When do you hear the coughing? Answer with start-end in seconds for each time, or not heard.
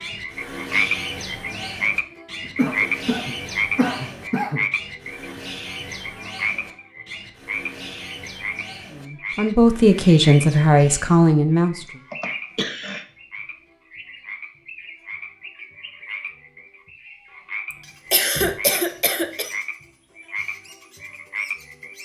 2.5-4.7, 11.8-13.1, 18.1-19.5.